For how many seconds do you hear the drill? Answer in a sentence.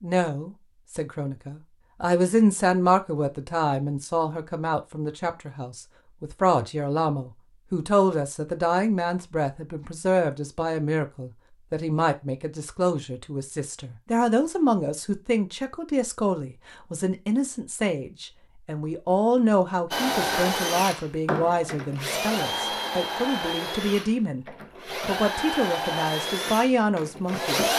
You can hear the drill for 8 seconds altogether.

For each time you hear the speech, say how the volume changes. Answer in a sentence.
You can hear the speech from 0.0 to 24.4 s, at a steady volume; and briefly from 25.1 to 27.6 s.